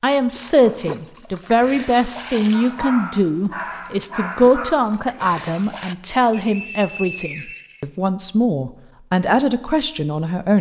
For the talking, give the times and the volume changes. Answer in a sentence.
You can hear the talking from 0.0 to 10.5 s, at a steady volume.